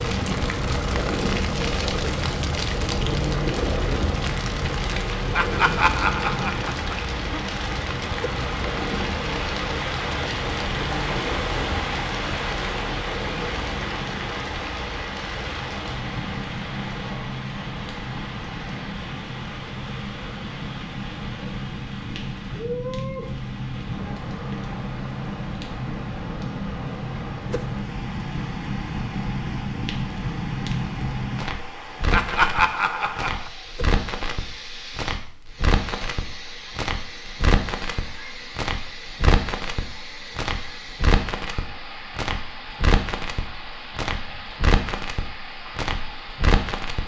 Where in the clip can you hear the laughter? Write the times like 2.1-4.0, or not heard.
5.3-7.4, 32.1-33.5.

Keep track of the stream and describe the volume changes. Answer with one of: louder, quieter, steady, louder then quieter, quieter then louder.
quieter.